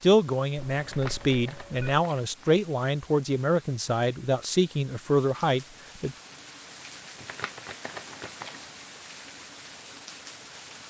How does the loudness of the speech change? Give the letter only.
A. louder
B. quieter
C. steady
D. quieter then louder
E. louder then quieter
C.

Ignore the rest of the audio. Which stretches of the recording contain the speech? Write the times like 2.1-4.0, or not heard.
0.0-6.2.